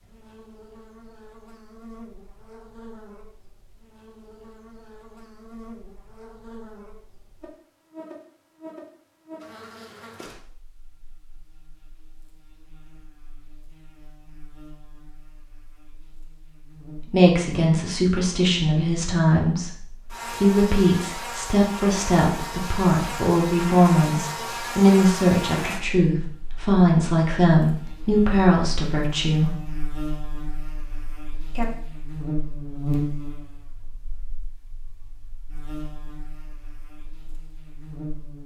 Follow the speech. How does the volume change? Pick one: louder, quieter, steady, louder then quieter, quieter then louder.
steady.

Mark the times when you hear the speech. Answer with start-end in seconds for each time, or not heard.
17.1-29.6.